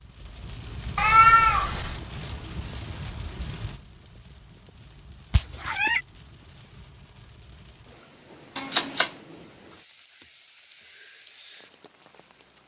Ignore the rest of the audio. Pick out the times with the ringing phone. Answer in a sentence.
The ringing phone can't be heard in this clip.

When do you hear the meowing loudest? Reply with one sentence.
The volume of the meowing peaks at 1 second.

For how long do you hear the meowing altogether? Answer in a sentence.
The meowing can be heard for 2 seconds in total.